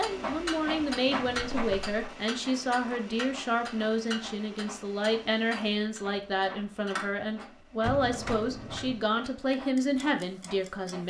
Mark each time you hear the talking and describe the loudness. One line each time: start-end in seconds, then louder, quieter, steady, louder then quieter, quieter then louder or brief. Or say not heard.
0.0-11.0 steady.